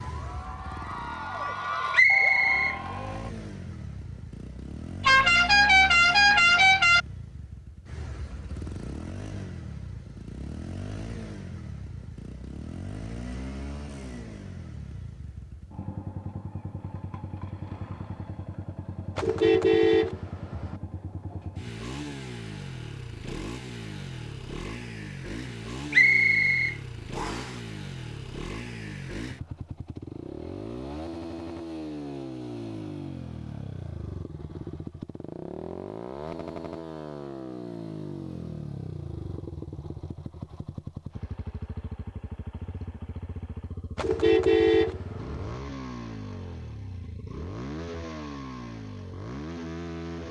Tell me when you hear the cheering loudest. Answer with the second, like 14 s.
2 s.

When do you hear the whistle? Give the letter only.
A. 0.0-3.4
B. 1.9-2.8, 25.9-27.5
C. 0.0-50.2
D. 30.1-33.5
B.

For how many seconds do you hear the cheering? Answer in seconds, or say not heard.
3 s.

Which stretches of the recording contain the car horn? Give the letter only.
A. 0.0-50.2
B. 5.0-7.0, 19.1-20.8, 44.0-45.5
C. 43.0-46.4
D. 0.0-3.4
B.